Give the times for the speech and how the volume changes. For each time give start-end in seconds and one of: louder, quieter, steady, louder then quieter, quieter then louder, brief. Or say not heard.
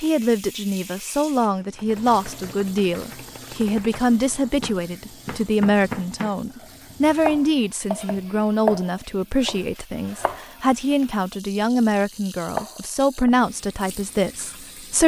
0.0-15.0 steady.